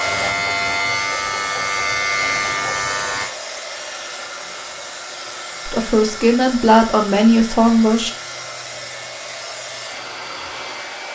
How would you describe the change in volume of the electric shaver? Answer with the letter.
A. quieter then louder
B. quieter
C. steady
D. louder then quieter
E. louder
B.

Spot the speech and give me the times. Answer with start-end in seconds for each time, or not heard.
5.7-8.1.